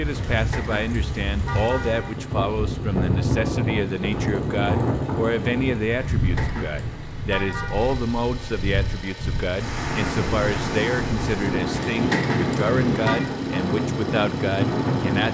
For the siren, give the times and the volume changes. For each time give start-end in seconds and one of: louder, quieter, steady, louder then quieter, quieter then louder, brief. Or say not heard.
not heard.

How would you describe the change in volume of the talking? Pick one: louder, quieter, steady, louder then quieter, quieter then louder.
steady.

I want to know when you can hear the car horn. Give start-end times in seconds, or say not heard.
0.3-2.1, 6.0-8.0, 11.7-13.3.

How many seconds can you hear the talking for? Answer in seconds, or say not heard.
15 s.